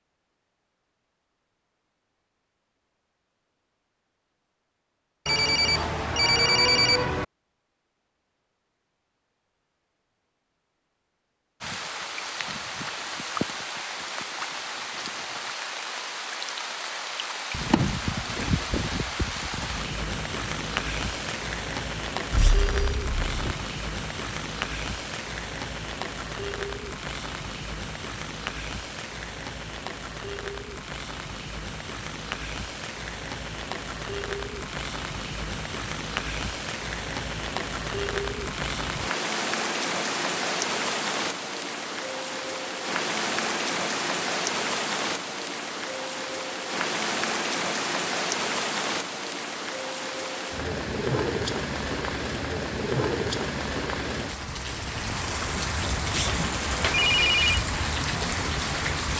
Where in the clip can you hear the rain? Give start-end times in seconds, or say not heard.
11.6-59.1.